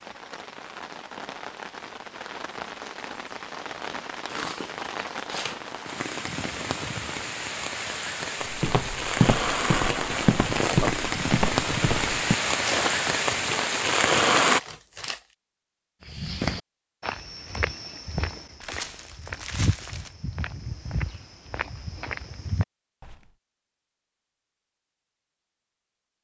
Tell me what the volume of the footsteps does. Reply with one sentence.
The volume of the footsteps goes down.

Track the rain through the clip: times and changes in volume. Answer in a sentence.
You can hear the rain from 0.0 to 14.6 s, getting louder.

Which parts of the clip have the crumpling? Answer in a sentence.
You can hear the crumpling from 4.2 to 5.8 s, from 14.5 to 15.2 s and from 18.6 to 20.1 s.